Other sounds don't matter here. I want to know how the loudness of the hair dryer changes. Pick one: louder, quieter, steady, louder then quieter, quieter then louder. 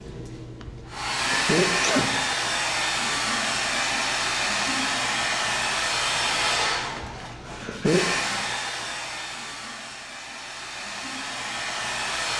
quieter.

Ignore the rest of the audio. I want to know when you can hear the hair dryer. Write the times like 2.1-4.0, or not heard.
0.0-12.3.